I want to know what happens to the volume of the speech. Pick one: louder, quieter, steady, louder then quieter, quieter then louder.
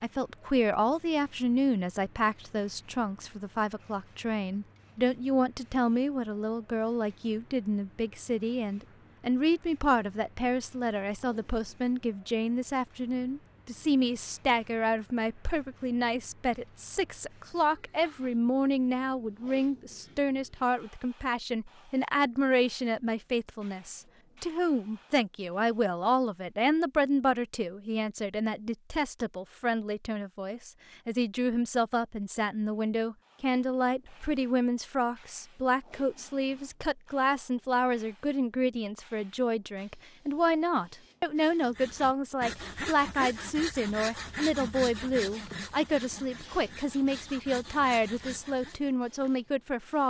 steady.